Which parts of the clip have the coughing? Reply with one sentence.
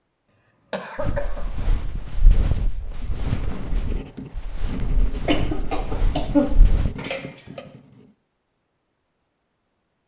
You can hear the coughing from 0.7 to 1.5 s and from 5.2 to 7.6 s.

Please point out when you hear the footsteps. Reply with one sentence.
The footsteps can be heard from 0.9 to 7.0 s.